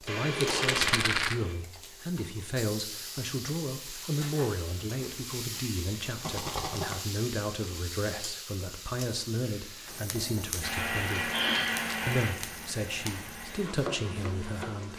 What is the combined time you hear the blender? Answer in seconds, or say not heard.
6 s.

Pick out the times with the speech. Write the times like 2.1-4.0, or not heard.
0.0-11.3, 12.1-14.9.